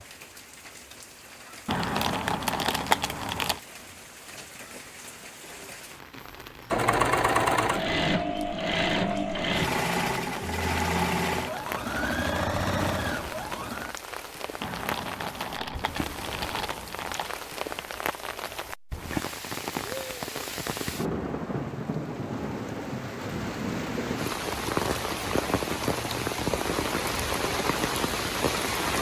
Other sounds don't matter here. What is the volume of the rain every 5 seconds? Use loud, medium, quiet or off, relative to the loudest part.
quiet, quiet, medium, medium, loud, loud.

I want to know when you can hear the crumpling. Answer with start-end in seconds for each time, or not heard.
1.6-3.6, 14.6-17.4.